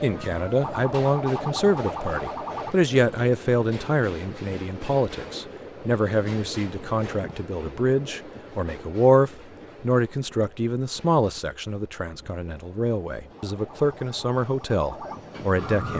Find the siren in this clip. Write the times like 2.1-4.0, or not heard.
0.0-2.8, 13.3-15.9.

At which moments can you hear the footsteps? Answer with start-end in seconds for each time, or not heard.
not heard.